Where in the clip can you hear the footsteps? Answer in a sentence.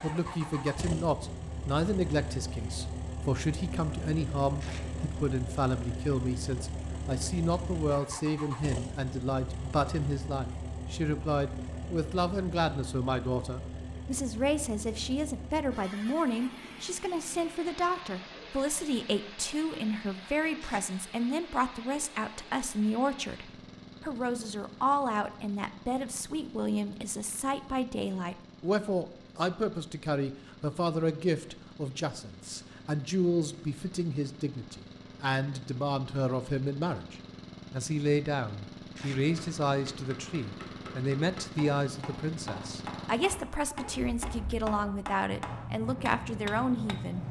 You can't hear the footsteps here.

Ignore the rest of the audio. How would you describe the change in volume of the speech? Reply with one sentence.
The volume of the speech stays about the same.